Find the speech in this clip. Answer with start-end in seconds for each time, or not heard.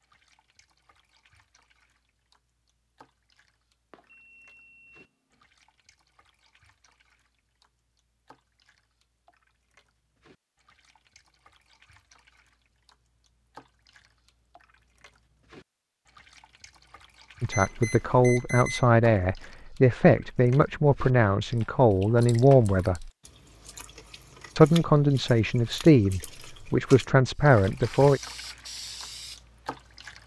17.4-23.1, 24.6-28.2.